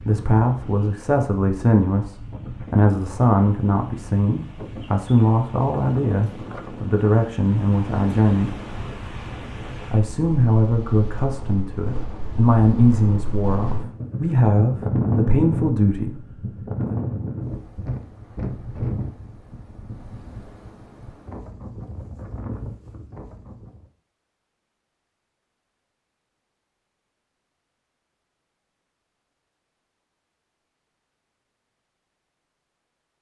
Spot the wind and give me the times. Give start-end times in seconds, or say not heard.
0.0-23.9.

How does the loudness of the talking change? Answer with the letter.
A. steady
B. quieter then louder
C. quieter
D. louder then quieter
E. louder
A.